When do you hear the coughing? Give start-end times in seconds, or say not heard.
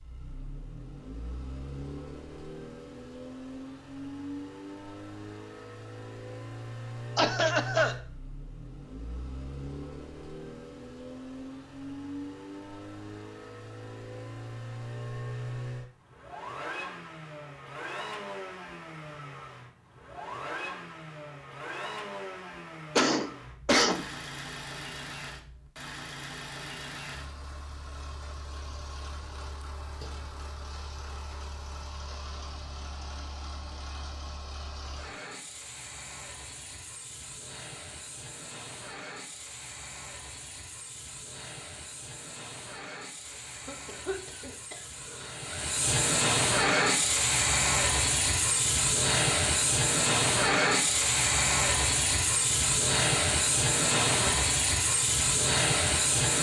7.2-8.0, 22.9-24.1, 43.2-45.5.